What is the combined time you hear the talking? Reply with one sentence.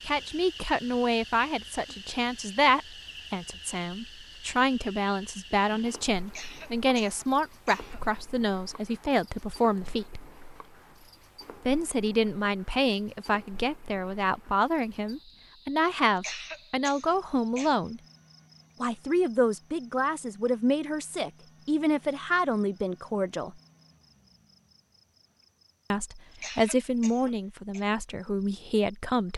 You can hear the talking for 25 seconds altogether.